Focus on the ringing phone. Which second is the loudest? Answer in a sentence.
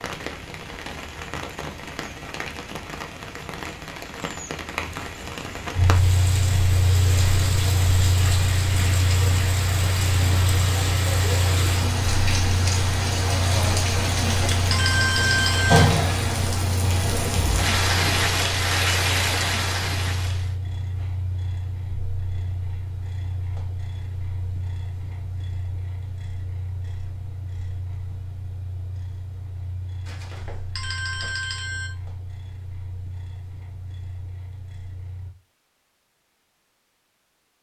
The volume of the ringing phone peaks at 15 seconds.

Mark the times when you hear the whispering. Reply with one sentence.
You can't hear the whispering here.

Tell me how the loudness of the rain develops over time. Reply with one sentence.
The volume of the rain goes up.